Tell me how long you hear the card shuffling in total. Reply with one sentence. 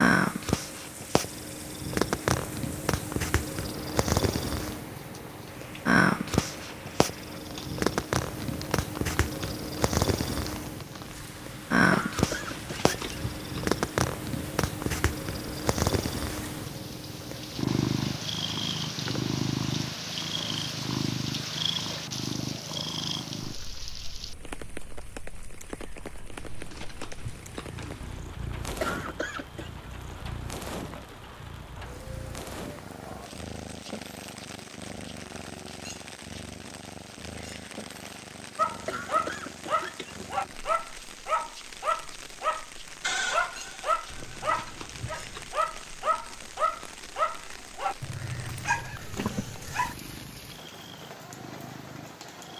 You can hear the card shuffling for 5 seconds altogether.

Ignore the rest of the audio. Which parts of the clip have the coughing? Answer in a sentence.
You can hear the coughing from 11.9 to 13.1 s, from 28.8 to 29.7 s and from 38.9 to 40.3 s.